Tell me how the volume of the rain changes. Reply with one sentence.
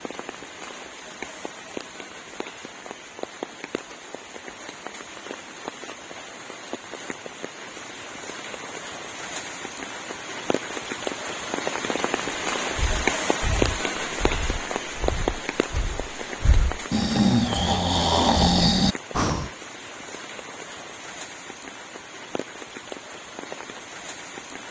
The volume of the rain goes up, then down.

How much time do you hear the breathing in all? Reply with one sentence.
The breathing can be heard for 7 seconds in total.